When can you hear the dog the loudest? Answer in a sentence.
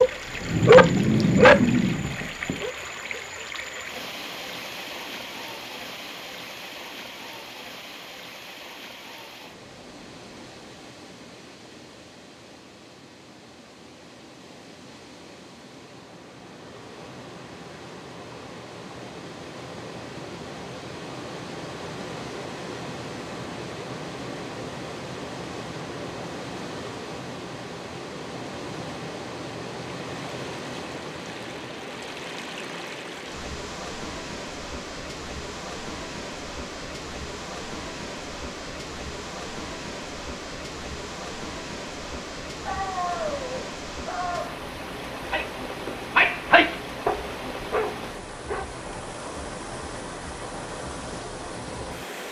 The volume of the dog peaks at 1 second.